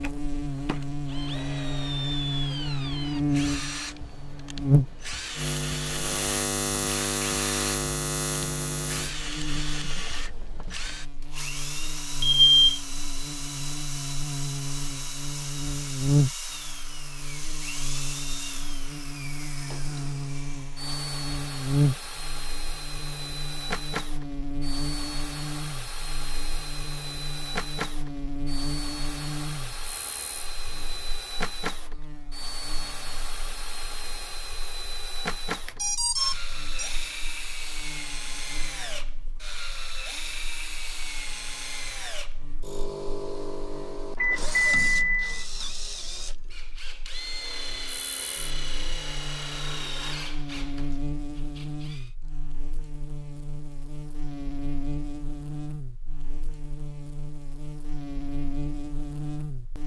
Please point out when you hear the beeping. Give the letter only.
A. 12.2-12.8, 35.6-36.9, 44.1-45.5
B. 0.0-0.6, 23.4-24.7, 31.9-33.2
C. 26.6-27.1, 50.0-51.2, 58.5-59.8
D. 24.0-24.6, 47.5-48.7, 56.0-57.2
A.